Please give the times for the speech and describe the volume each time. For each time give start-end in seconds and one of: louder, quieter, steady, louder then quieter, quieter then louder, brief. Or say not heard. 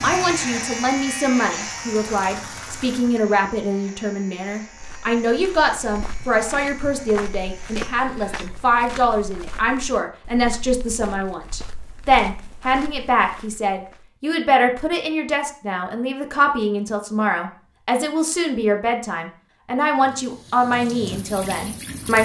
0.0-22.2 steady.